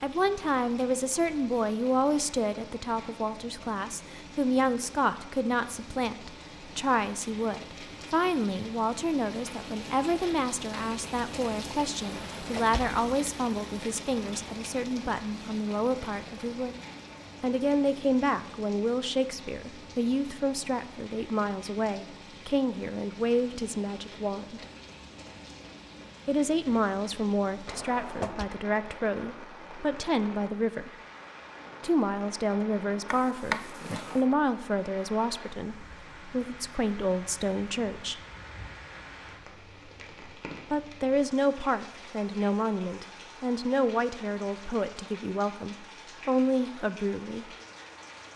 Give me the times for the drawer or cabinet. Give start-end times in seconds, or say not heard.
12.0-13.0, 27.6-28.4, 33.1-34.2.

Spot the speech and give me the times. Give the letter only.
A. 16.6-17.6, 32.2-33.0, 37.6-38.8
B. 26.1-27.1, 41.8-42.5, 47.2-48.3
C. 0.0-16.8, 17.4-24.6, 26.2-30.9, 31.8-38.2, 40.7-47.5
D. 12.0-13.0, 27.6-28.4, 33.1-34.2
C.